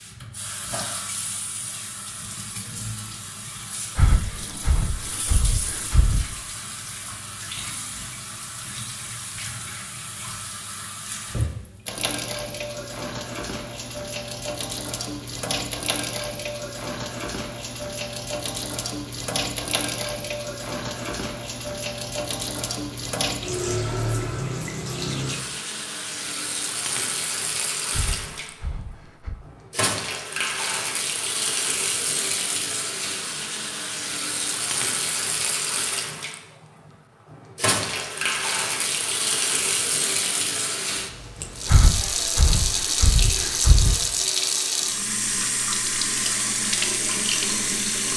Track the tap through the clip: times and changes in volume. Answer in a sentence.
You can hear the tap from 0.0 to 48.1 s, getting louder.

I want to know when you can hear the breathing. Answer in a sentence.
The breathing can be heard from 4.0 to 6.2 s, from 27.9 to 29.4 s and from 41.6 to 44.0 s.